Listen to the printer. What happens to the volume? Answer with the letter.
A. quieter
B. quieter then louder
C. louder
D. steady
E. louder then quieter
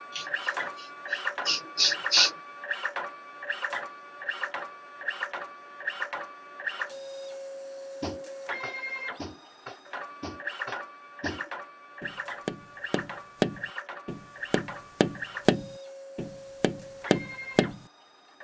A.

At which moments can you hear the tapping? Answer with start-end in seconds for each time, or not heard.
8.0-17.8.